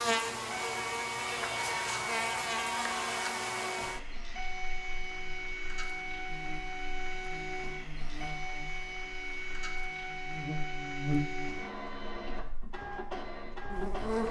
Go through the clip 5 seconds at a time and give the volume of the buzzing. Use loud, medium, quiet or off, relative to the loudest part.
loud, quiet, loud.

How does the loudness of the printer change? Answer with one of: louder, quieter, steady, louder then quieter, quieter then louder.
steady.